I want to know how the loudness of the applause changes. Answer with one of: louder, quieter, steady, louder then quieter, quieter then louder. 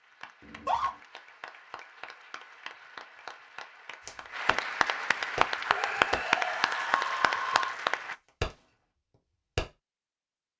louder.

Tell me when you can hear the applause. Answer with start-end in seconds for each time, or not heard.
0.0-8.2.